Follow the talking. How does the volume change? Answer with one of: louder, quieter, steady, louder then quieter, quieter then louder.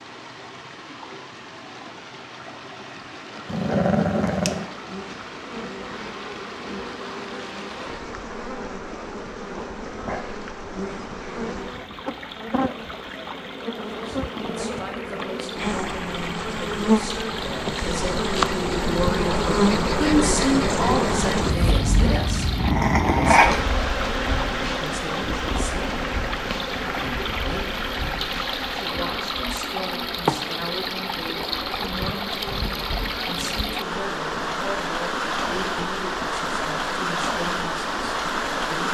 louder then quieter.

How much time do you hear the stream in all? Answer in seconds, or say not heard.
39 s.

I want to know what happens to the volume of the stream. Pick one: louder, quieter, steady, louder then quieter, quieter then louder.
louder.